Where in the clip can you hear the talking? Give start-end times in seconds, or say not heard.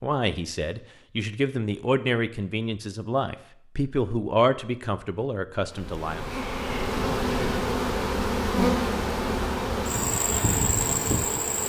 0.0-6.3.